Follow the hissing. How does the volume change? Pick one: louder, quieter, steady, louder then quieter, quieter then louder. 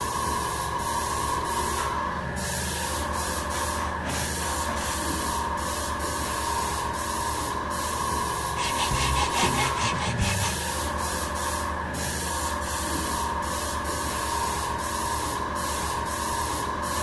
steady.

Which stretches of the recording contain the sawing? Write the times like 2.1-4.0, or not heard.
3.5-5.1, 8.6-10.6.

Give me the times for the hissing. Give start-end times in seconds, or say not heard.
0.0-16.9.